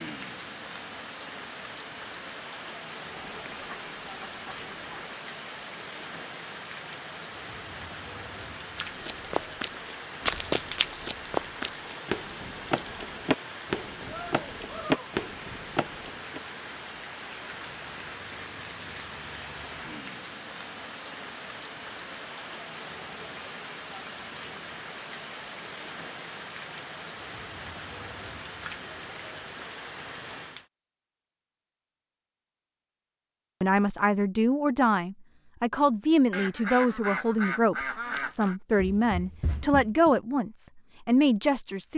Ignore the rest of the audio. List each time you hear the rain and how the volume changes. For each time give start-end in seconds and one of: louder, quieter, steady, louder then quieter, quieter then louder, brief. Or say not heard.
0.0-30.7 steady.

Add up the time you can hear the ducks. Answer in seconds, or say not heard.
4 s.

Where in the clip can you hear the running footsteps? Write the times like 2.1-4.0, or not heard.
8.9-16.4, 38.1-40.1.